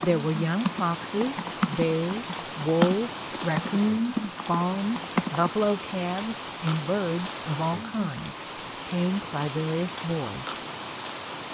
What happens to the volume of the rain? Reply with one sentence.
The volume of the rain stays about the same.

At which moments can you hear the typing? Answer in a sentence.
You can hear the typing from 0.0 to 5.5 s.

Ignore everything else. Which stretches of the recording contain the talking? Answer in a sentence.
You can hear the talking from 0.0 to 10.6 s.